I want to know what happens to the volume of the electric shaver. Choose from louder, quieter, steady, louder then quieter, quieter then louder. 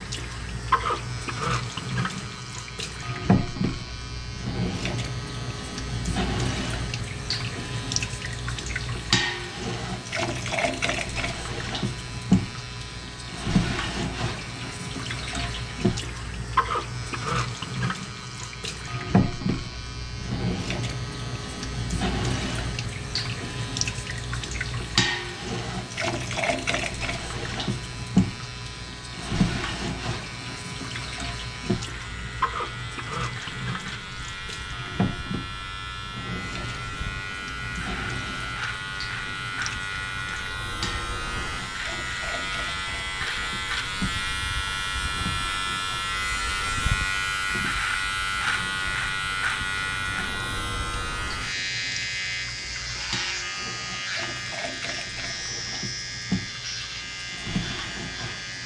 louder.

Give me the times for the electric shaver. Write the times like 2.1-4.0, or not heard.
0.0-58.6.